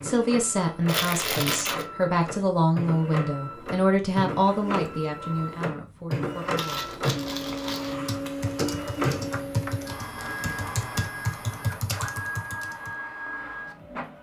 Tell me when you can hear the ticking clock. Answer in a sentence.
The ticking clock can't be heard in this clip.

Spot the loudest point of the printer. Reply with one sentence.
The volume of the printer peaks at 9 seconds.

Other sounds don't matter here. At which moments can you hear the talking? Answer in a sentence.
You can hear the talking from 0.0 to 6.8 s.